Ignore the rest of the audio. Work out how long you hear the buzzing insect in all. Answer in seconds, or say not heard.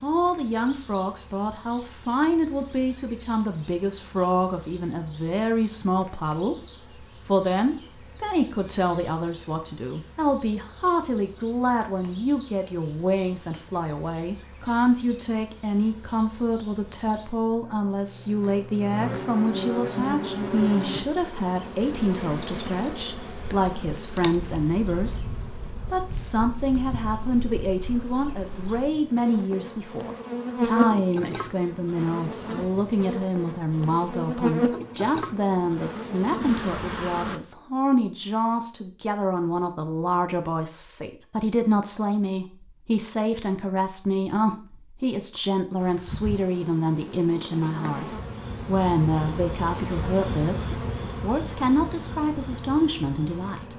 45 s.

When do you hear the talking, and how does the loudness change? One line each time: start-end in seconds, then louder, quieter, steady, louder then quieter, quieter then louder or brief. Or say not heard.
0.0-53.7 steady.